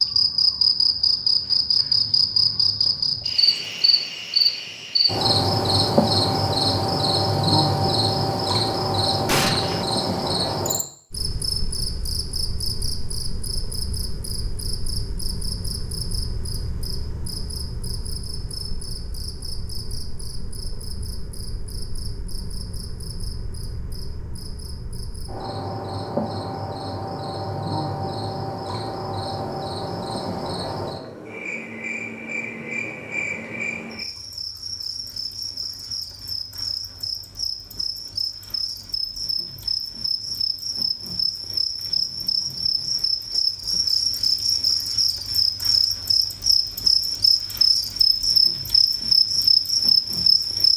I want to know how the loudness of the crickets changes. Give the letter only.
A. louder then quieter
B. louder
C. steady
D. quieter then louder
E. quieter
D.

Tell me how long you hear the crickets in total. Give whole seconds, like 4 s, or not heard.
51 s.